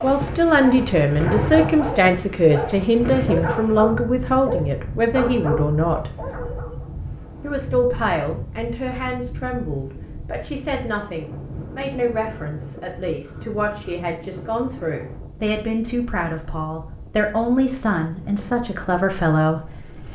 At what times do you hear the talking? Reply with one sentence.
The talking can be heard from 0.0 to 6.1 s and from 7.4 to 20.1 s.